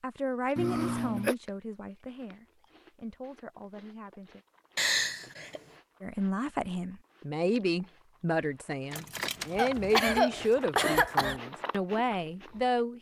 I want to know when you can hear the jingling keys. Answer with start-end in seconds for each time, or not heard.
8.9-9.9.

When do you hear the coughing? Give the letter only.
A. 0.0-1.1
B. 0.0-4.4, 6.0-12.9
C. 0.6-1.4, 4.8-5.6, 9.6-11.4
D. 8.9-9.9
C.